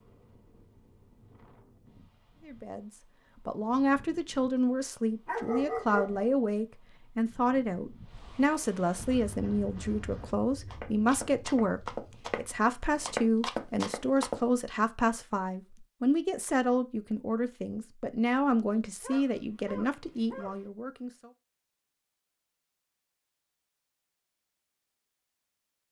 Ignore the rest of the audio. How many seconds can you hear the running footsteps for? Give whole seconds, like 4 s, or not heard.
5 s.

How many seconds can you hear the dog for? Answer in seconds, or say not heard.
3 s.